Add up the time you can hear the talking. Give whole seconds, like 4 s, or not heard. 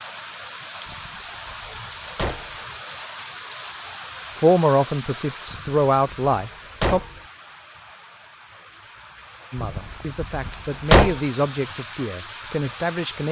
6 s.